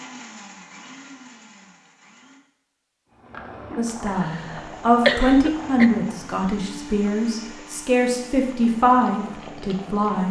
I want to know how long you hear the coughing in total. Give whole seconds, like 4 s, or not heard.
2 s.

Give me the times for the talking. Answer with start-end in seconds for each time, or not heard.
3.8-10.2.